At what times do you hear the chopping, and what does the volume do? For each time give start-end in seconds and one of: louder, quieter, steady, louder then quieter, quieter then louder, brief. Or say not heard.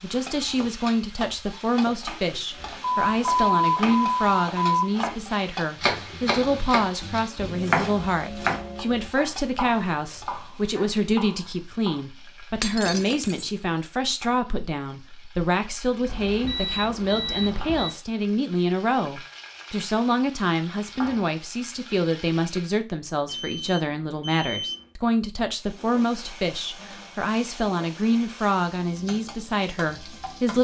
0.5-12.1 louder then quieter.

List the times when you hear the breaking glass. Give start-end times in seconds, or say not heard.
12.6-13.5.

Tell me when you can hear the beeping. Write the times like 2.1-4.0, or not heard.
2.8-4.8, 16.1-17.9, 23.2-24.9.